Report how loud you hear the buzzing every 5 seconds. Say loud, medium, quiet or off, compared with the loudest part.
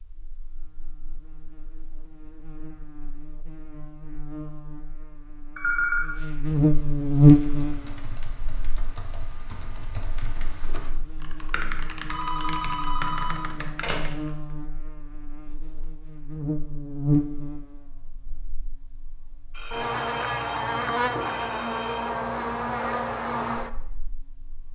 quiet, loud, quiet, medium, medium.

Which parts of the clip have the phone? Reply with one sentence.
You can hear the phone from 5.5 to 6.0 s, from 12.1 to 13.9 s and from 19.5 to 22.1 s.